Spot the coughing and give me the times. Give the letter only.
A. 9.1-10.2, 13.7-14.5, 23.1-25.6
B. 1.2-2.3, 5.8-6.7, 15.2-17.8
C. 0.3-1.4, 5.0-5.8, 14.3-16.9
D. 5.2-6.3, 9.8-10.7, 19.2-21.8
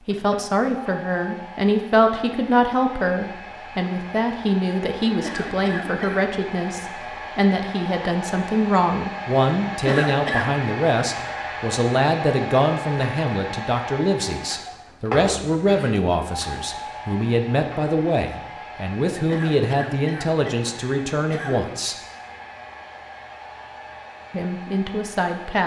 D.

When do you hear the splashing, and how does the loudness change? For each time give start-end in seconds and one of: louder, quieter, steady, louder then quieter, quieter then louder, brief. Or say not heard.
not heard.